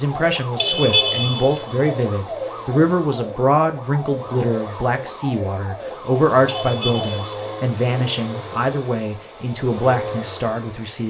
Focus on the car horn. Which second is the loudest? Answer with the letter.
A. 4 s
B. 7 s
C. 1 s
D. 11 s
C.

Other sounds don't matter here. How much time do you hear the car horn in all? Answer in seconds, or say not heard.
2 s.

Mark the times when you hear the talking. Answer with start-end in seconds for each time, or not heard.
0.0-11.0.